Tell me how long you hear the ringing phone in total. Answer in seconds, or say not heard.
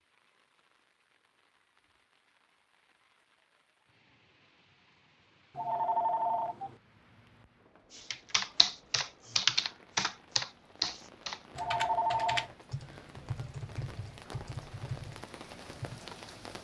2 s.